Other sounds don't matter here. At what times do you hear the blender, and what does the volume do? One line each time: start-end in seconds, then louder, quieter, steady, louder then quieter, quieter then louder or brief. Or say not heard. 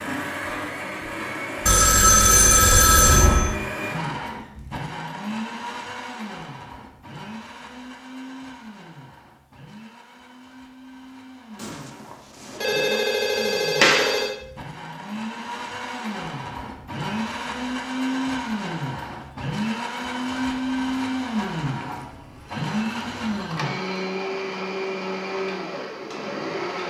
0.0-26.8 quieter then louder.